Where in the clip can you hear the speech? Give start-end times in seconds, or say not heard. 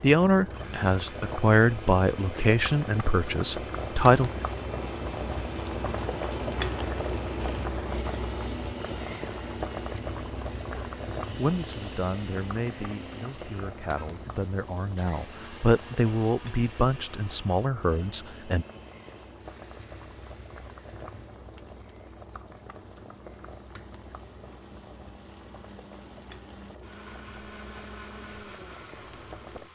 0.0-4.3, 11.3-18.6.